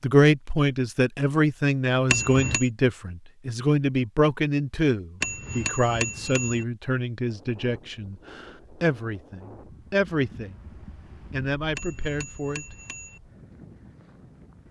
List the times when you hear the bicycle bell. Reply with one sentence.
The bicycle bell can be heard from 2.1 to 2.7 s, from 5.2 to 6.7 s and from 11.8 to 13.2 s.